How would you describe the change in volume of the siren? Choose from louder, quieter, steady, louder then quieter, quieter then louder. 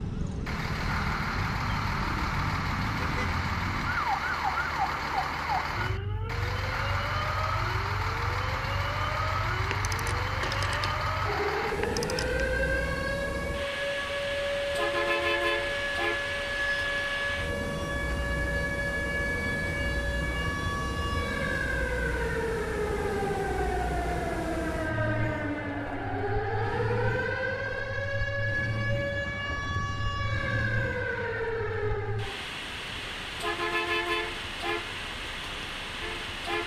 steady.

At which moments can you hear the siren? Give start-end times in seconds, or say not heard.
0.0-32.5.